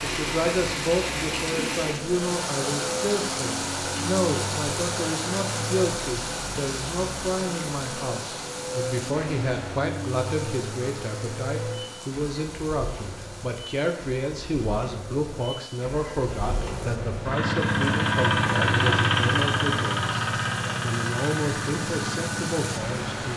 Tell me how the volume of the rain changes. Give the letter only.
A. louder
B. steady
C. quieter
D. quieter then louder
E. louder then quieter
D.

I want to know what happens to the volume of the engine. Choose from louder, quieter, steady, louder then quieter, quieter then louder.
louder.